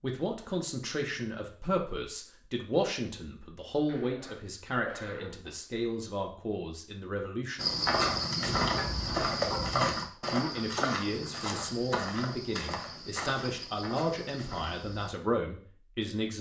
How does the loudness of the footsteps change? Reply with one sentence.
The volume of the footsteps goes down.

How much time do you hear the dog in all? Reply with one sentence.
The dog can be heard for 2 seconds in total.